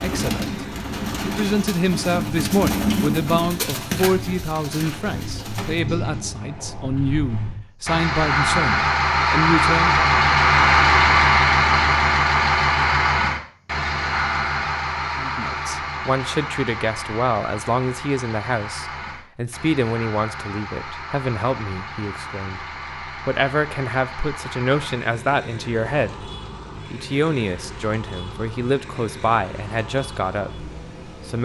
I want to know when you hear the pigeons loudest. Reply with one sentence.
The loudest moment of the pigeons is at 3 seconds.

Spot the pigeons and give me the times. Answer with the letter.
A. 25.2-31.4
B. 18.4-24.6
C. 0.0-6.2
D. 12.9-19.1
C.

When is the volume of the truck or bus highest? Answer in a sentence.
The volume of the truck or bus peaks at 11 seconds.